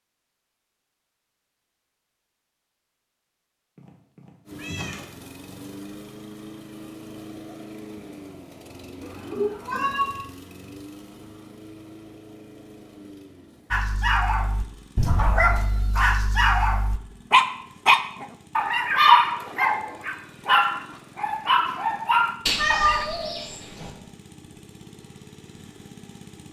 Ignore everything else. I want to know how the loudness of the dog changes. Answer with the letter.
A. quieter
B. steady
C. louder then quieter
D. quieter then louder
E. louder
C.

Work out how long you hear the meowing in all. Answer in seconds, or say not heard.
4 s.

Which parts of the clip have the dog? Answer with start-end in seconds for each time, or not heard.
13.7-23.1.